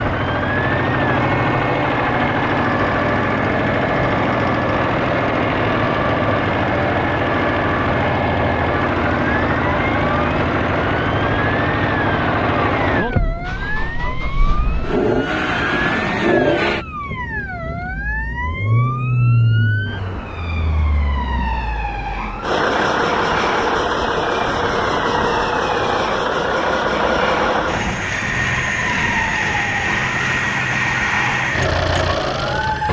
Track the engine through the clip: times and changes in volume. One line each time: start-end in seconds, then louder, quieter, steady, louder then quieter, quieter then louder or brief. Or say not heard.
0.0-32.8 steady.